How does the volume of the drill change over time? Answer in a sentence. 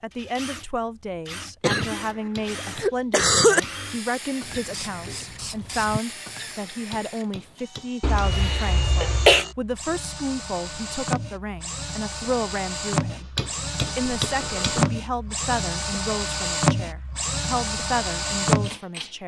The volume of the drill goes up.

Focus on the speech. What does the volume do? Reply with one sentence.
The volume of the speech stays about the same.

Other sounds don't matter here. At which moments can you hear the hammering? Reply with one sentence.
You can hear the hammering from 2.1 to 3.8 s, from 6.7 to 8.3 s and from 13.1 to 14.8 s.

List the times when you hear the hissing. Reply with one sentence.
You can hear the hissing from 4.5 to 6.0 s.